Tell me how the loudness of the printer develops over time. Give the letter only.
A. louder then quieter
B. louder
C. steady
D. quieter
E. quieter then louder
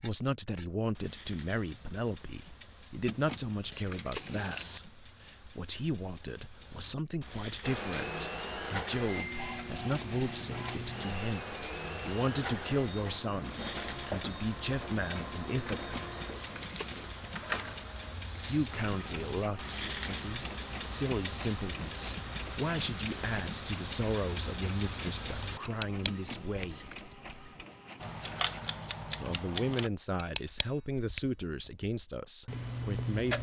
D.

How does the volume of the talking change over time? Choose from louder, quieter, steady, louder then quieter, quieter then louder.
steady.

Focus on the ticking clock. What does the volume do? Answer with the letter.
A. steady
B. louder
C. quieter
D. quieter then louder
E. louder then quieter
B.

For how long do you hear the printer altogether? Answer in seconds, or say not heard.
21 s.